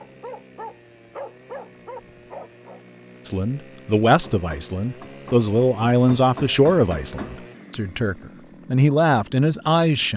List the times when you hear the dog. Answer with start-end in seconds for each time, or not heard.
0.0-2.8.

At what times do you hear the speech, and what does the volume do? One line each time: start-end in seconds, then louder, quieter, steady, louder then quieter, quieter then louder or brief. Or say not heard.
3.2-10.1 quieter then louder.